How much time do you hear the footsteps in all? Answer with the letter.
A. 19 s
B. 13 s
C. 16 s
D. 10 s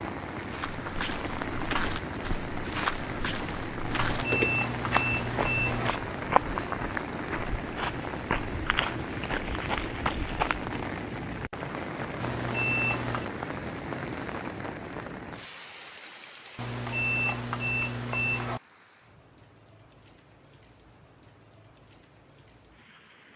D.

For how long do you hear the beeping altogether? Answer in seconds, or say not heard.
5 s.